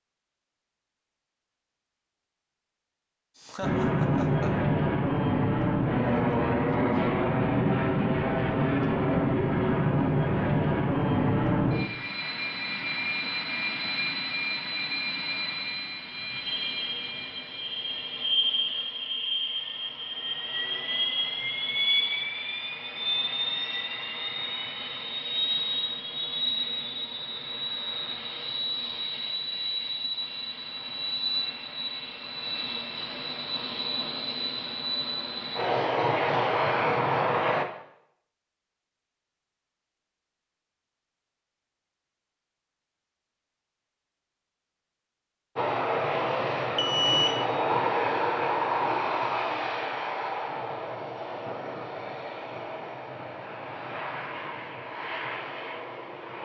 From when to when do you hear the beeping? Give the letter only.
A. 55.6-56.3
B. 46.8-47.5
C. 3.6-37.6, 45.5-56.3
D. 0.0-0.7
B.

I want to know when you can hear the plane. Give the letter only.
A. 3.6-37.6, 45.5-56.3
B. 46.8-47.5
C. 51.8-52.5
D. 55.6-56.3
A.